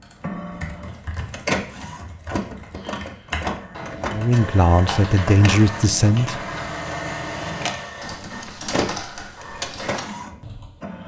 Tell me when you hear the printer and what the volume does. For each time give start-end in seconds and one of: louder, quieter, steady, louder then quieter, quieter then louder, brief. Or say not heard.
0.0-11.0 steady.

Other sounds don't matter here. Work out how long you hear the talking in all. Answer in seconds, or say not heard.
2 s.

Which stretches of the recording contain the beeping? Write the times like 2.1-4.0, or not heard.
not heard.